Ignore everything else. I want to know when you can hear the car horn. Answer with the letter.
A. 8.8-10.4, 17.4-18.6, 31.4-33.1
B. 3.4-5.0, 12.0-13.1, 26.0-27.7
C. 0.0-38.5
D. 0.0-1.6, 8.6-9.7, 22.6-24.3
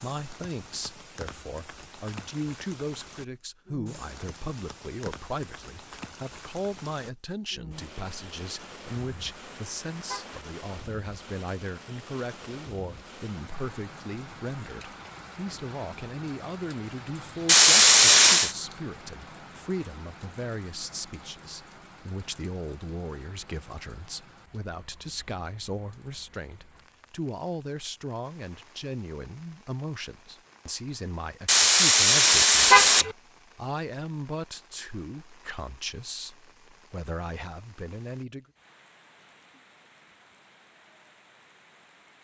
A.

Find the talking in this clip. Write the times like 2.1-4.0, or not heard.
0.0-38.5.